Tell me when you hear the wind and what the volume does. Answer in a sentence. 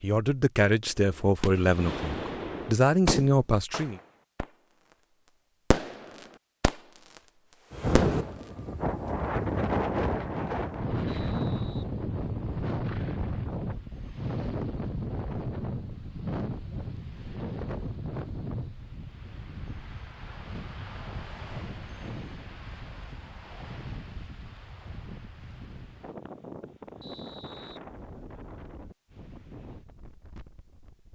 You can hear the wind from 7.7 to 31.1 s, getting quieter.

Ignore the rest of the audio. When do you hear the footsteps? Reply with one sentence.
You can't hear the footsteps here.